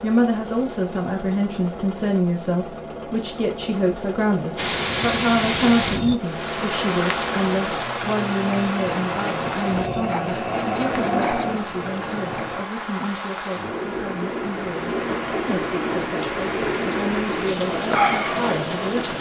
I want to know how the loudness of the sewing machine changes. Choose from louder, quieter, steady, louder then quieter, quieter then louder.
louder.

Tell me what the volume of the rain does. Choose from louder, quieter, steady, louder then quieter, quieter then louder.
quieter then louder.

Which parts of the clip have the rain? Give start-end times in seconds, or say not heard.
4.5-19.1.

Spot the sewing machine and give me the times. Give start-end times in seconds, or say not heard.
0.0-12.7.